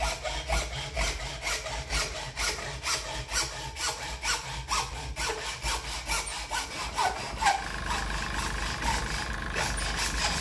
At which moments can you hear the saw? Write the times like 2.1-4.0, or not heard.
0.0-10.3.